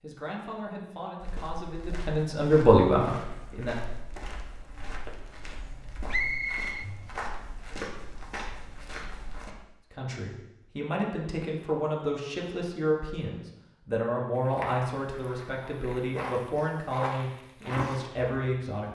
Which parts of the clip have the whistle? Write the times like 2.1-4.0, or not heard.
6.1-6.8.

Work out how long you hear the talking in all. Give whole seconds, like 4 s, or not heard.
13 s.